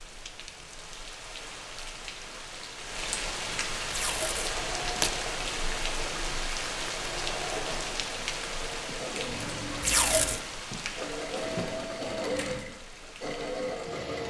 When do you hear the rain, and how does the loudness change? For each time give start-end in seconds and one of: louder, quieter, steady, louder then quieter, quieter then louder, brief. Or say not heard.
0.0-14.2 louder then quieter.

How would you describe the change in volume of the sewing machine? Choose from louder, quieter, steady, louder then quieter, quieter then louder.
louder.